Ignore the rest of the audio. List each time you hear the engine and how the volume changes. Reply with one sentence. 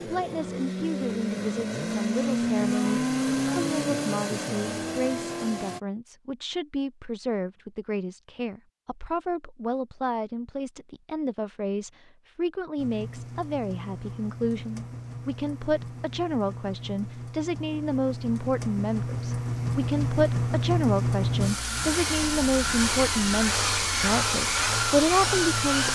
The engine can be heard from 0.0 to 5.8 s, getting louder then quieter; and from 12.8 to 25.9 s, getting louder.